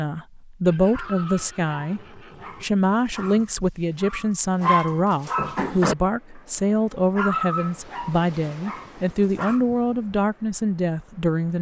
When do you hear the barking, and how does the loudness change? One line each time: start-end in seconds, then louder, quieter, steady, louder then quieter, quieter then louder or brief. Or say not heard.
0.9-6.0 quieter then louder
6.7-9.7 brief.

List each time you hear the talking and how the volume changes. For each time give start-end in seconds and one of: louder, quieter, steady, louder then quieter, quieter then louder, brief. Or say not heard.
0.0-11.5 steady.